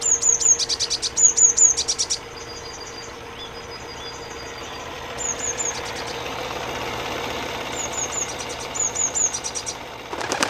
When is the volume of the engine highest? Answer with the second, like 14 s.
7 s.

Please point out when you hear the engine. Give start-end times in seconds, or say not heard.
0.0-10.4.